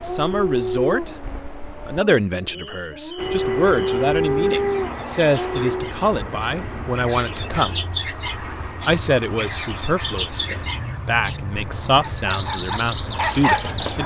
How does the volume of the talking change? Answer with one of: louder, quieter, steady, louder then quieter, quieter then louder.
steady.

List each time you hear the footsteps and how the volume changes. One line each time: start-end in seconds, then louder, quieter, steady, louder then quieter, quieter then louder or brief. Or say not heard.
not heard.